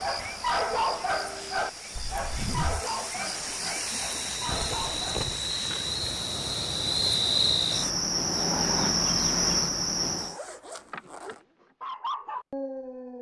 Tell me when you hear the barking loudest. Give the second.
1 s.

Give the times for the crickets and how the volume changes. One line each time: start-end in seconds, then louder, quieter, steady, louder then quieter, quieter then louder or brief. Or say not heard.
0.0-10.3 louder.